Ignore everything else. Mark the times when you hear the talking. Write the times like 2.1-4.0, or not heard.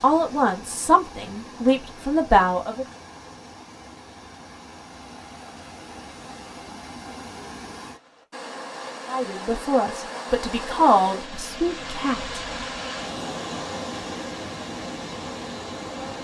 0.0-2.9, 9.1-12.4.